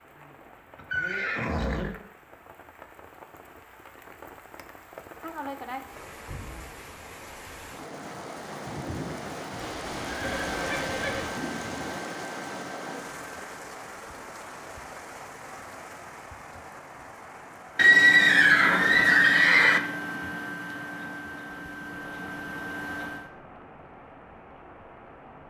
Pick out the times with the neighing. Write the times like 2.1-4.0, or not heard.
0.8-1.9, 9.6-11.3, 17.8-19.8.